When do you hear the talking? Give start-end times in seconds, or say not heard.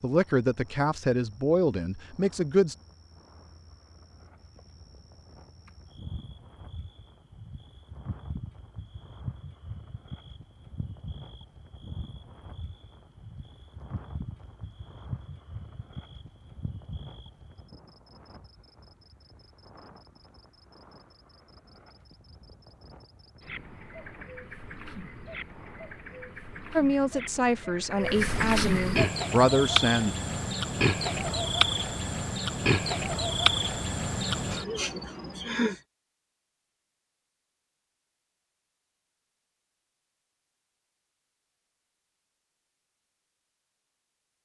0.0-2.8, 26.8-30.1.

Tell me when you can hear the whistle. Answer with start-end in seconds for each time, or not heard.
not heard.